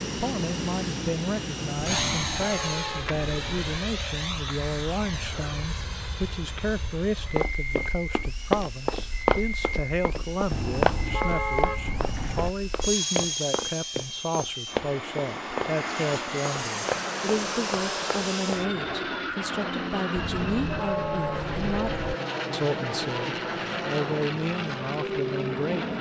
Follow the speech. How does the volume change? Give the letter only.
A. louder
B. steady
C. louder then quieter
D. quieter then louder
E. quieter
B.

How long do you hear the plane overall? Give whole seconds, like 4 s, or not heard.
26 s.